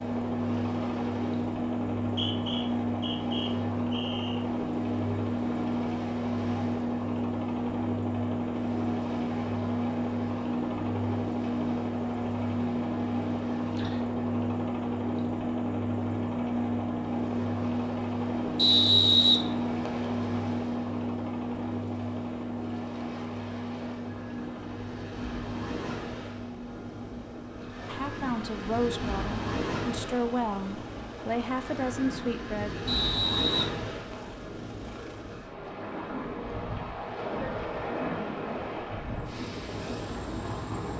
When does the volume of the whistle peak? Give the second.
19 s.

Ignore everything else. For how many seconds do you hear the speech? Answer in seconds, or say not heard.
5 s.